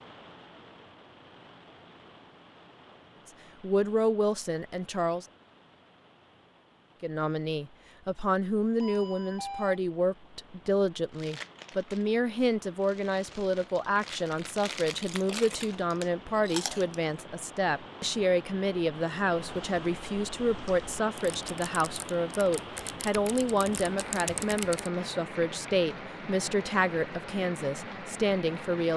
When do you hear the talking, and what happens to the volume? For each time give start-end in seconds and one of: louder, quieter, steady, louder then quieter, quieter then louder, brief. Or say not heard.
3.2-5.2 brief
7.0-28.9 steady.